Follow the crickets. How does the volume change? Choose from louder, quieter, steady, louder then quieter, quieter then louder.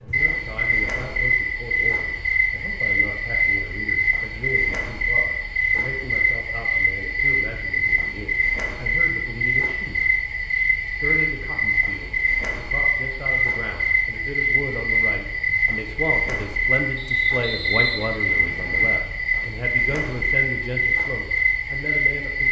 steady.